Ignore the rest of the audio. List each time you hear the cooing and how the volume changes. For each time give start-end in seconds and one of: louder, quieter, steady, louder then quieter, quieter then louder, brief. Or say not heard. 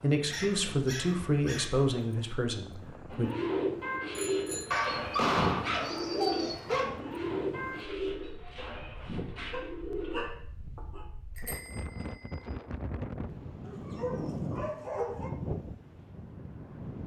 3.1-10.3 quieter.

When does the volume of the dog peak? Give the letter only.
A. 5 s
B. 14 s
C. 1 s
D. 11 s
A.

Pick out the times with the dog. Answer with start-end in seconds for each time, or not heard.
0.3-1.8, 4.7-7.0, 9.5-11.1, 13.7-15.3.